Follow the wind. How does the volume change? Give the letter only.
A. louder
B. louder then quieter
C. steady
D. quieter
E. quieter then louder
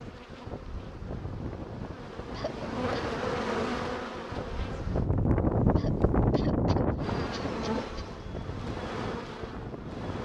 B.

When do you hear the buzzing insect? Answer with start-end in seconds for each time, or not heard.
0.0-5.1, 7.0-10.2.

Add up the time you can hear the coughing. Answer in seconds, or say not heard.
3 s.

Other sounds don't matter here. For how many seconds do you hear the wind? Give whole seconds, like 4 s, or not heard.
10 s.